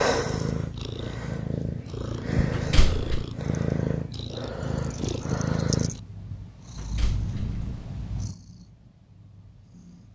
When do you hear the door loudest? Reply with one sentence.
The volume of the door peaks at 3 seconds.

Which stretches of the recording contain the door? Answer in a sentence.
You can hear the door from 2.5 to 3.2 s and from 6.8 to 7.7 s.